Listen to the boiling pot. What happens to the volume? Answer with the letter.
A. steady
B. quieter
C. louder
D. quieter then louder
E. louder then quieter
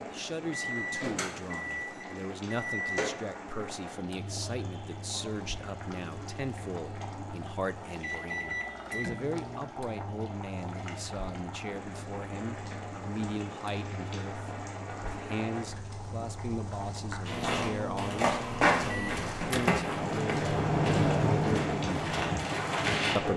C.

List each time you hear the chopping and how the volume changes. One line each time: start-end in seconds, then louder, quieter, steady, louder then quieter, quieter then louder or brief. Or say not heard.
not heard.